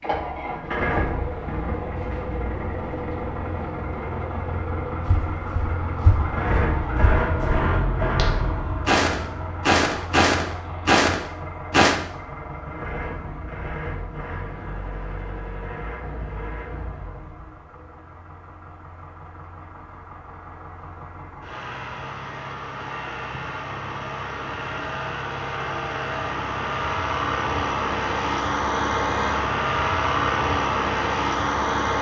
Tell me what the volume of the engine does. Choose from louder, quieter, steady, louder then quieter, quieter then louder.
quieter then louder.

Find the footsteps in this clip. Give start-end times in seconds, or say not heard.
5.0-11.9.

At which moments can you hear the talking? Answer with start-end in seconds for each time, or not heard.
not heard.